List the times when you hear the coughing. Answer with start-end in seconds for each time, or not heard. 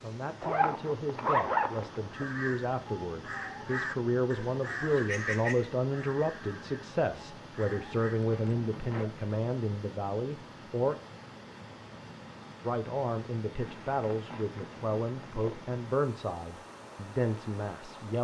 not heard.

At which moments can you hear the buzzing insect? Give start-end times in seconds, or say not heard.
not heard.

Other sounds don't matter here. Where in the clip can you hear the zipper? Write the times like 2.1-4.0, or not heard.
0.4-2.2, 8.2-9.1, 13.6-15.6.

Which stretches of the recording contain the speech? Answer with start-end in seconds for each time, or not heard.
0.0-11.0, 12.6-18.2.